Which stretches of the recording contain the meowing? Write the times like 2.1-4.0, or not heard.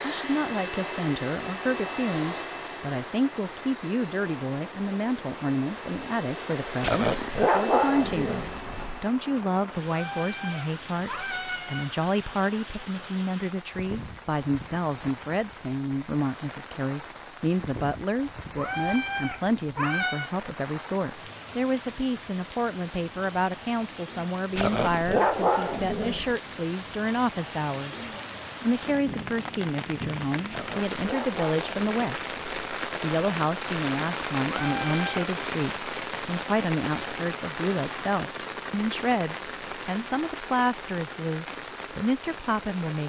9.8-11.9, 18.6-20.3, 34.5-35.2.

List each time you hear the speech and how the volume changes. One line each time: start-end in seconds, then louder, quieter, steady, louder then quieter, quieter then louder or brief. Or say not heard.
0.0-32.4 steady
33.0-43.0 steady.